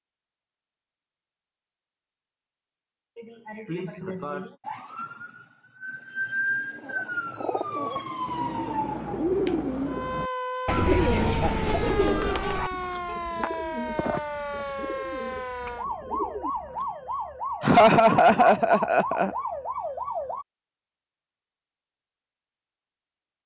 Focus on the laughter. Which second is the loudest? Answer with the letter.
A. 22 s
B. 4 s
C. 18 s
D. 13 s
C.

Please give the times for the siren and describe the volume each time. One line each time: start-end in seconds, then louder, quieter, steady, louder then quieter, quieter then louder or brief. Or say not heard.
4.6-20.4 steady.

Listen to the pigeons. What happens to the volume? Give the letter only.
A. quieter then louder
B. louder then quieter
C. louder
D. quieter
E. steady
B.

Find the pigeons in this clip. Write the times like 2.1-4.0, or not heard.
6.7-16.9.